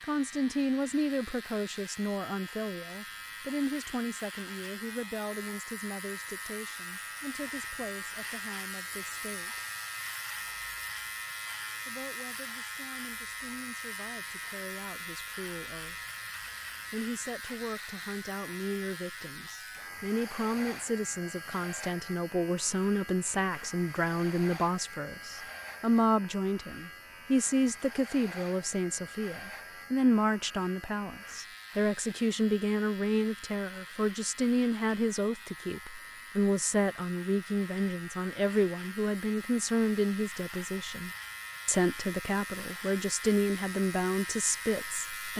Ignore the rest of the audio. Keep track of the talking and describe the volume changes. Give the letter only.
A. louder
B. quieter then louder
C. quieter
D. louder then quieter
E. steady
B.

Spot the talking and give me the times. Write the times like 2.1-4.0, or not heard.
0.0-9.7, 11.8-15.9, 16.9-45.3.